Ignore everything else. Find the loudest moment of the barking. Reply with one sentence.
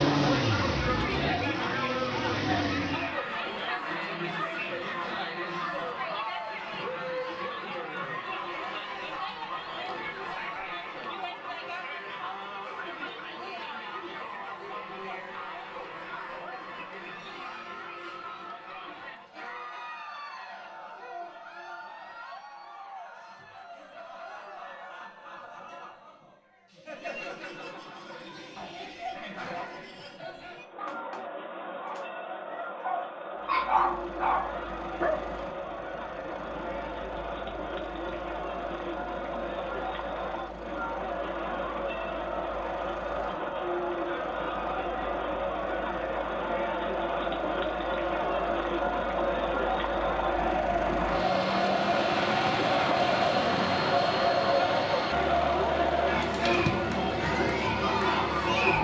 The loudest moment of the barking is at 34 seconds.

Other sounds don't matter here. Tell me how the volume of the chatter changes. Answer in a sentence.
The volume of the chatter goes down, then up.